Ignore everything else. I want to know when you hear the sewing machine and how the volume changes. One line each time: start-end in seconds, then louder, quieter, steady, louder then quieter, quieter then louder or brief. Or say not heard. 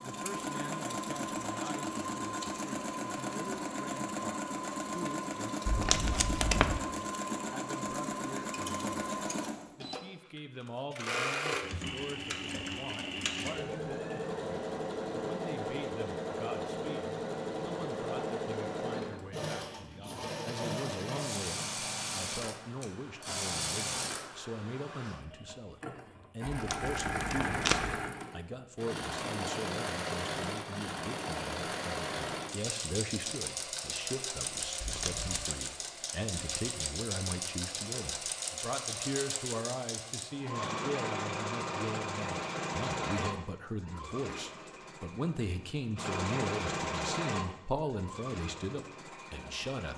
0.0-49.9 steady.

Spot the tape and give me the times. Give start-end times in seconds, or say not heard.
5.7-6.8, 26.4-28.0, 34.8-35.5.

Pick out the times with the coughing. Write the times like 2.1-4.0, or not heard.
not heard.